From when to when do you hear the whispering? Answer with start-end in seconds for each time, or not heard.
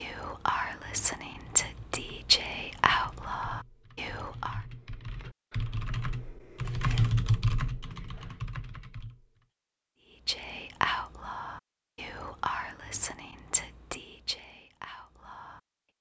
0.0-4.6, 10.2-15.6.